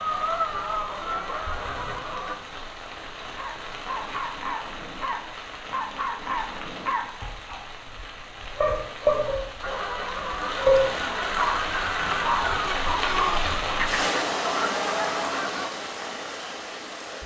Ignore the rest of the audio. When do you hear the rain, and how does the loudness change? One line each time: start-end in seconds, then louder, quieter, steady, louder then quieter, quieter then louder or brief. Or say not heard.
0.0-17.2 louder.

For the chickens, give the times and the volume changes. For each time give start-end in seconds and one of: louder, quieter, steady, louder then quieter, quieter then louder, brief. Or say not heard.
0.0-2.4 brief
9.6-15.7 steady.